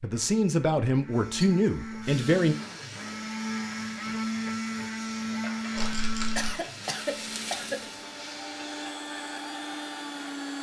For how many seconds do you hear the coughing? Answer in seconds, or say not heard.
2 s.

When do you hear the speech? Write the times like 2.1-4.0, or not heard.
0.0-2.5.